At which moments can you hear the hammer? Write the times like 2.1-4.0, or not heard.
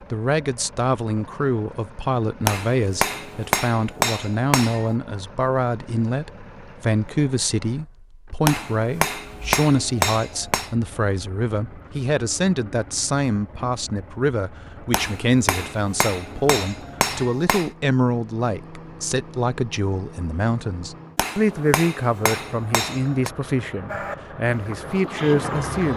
2.5-5.0, 8.4-10.7, 14.9-17.7, 21.1-23.3.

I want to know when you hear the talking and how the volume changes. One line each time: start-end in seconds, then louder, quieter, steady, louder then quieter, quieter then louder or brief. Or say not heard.
0.1-25.9 steady.